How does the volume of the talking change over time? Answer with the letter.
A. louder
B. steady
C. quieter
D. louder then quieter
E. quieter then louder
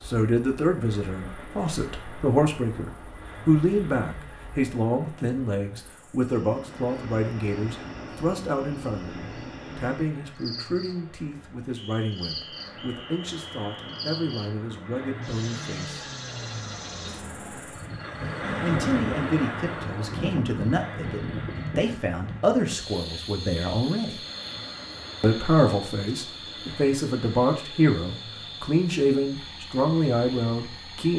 E.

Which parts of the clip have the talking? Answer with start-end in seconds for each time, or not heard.
0.0-16.1, 18.6-24.2, 25.2-31.1.